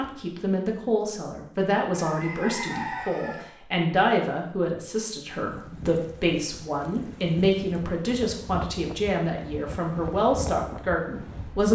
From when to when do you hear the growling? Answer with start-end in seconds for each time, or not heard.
not heard.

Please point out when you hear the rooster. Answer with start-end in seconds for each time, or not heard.
1.9-3.5.